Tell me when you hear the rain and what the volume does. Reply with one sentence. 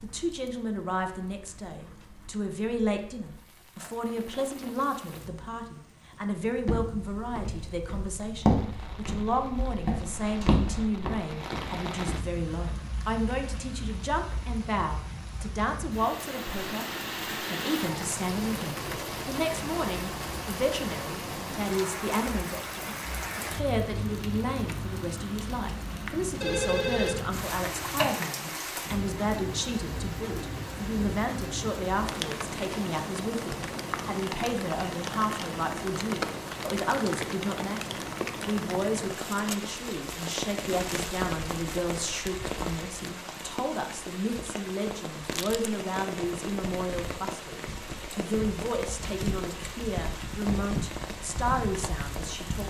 The rain can be heard from 0.0 to 52.6 s, getting louder.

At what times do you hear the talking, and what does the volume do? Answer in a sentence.
The talking can be heard from 0.0 to 52.6 s, at a steady volume.